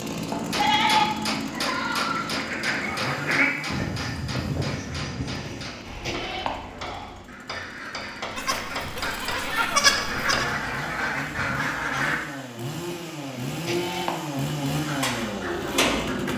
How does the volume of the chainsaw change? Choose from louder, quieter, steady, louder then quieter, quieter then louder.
quieter then louder.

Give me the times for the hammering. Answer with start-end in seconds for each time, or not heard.
0.3-10.5.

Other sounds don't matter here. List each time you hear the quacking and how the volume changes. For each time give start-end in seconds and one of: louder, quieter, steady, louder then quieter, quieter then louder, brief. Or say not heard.
2.1-12.2 quieter then louder
14.8-16.3 brief.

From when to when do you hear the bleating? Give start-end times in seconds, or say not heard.
0.3-2.4, 5.3-6.5, 8.3-10.4, 12.8-14.2.